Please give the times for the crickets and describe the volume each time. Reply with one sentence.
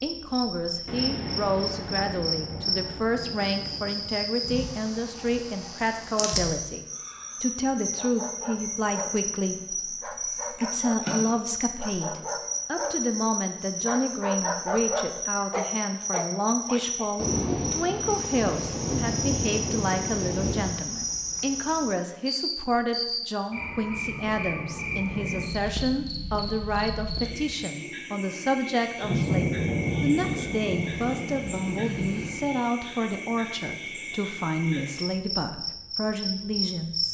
You can hear the crickets from 0.0 to 37.1 s, at a steady volume.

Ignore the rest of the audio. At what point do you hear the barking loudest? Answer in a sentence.
The volume of the barking peaks at 15 seconds.